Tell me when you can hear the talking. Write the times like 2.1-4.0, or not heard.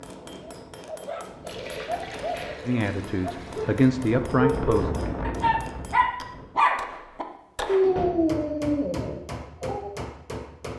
2.6-4.9.